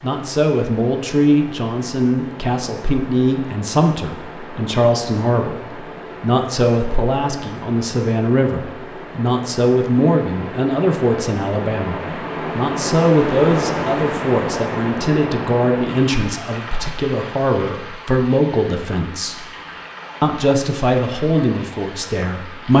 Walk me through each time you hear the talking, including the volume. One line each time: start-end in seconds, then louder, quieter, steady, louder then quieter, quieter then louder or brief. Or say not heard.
0.0-19.5 steady
20.2-22.7 brief.